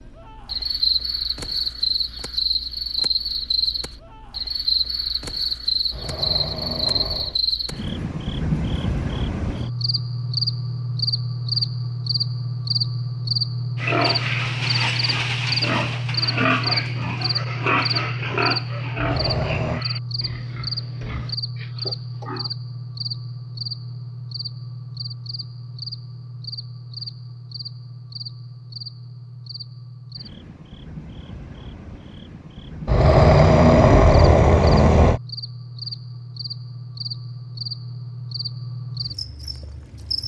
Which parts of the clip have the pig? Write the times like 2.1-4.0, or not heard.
13.8-22.6.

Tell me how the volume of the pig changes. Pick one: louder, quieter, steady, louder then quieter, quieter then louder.
quieter.